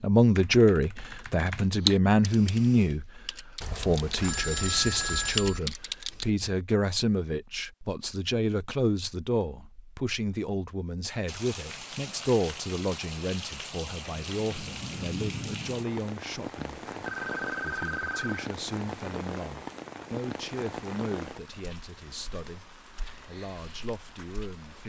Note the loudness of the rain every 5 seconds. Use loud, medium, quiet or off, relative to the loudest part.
off, off, loud, loud, medium.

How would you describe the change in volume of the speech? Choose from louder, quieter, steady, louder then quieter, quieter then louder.
quieter.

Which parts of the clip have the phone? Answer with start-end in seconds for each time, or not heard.
3.6-5.6, 17.0-18.4.